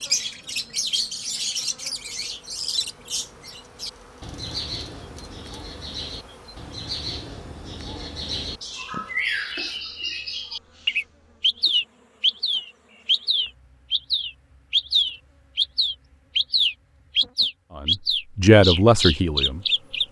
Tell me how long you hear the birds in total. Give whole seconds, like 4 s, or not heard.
20 s.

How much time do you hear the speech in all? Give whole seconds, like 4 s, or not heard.
2 s.